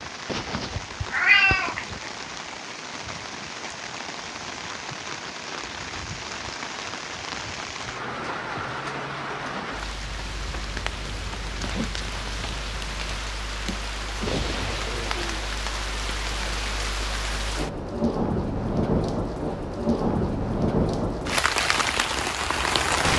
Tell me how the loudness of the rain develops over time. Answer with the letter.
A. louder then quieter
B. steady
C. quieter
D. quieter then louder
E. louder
E.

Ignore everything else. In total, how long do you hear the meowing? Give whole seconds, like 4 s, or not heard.
2 s.